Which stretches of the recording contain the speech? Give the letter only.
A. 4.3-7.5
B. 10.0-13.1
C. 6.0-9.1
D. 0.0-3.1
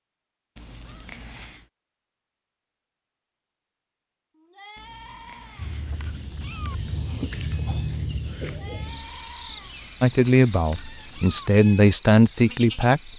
B.